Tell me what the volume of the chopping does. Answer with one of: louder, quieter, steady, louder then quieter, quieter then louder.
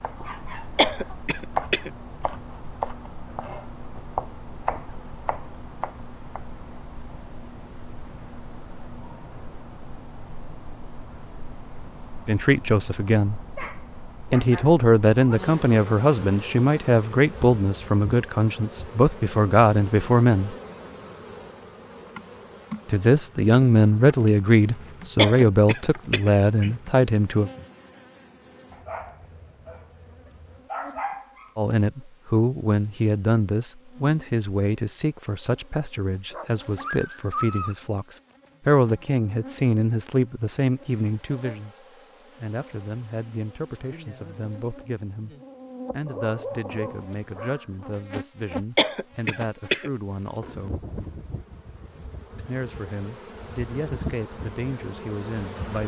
louder then quieter.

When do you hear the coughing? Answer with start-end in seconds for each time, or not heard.
0.8-1.9, 25.1-26.8, 48.8-49.9.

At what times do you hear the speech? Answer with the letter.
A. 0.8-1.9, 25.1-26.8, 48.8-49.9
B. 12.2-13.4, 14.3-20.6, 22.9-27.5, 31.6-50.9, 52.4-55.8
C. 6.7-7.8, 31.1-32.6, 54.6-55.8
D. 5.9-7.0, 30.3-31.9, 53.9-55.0
B.